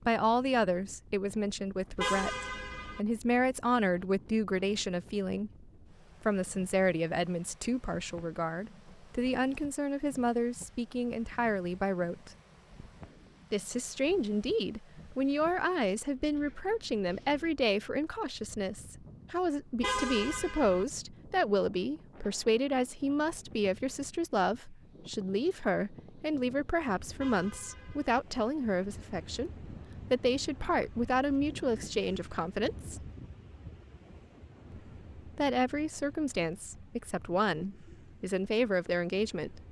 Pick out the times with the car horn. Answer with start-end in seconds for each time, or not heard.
1.9-3.0, 19.8-20.9, 27.1-28.2.